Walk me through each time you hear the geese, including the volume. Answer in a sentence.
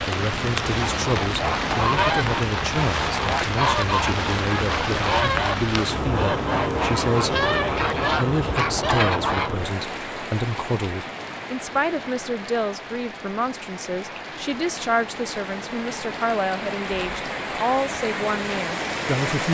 The geese can be heard from 0.9 to 9.5 s, at a steady volume.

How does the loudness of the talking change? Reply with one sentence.
The loudness of the talking stays about the same.